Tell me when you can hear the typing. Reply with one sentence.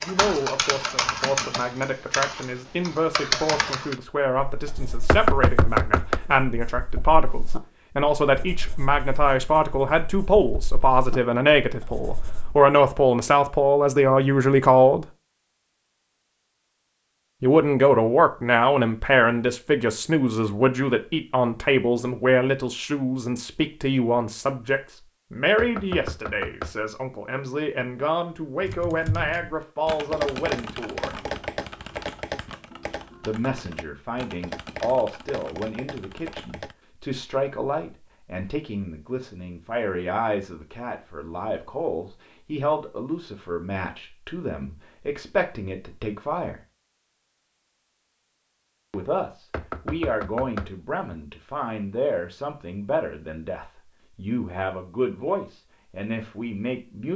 The typing can be heard from 0.0 to 4.0 s and from 28.6 to 36.8 s.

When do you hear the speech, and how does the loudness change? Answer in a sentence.
You can hear the speech from 0.0 to 15.1 s, getting louder; from 17.4 to 31.2 s, getting quieter; from 33.2 to 46.5 s, at a steady volume; and from 48.9 to 57.1 s, at a steady volume.